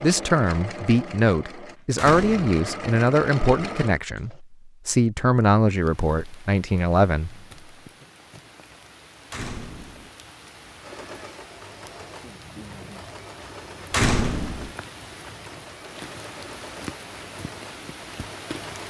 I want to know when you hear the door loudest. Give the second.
14 s.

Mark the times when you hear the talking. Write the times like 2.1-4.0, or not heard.
0.0-7.3.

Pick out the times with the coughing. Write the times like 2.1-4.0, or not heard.
not heard.